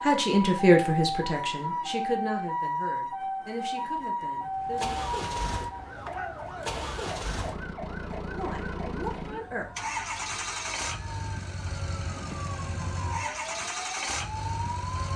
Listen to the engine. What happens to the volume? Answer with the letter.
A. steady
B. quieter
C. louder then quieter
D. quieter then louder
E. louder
A.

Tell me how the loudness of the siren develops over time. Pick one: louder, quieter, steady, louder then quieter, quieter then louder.
quieter then louder.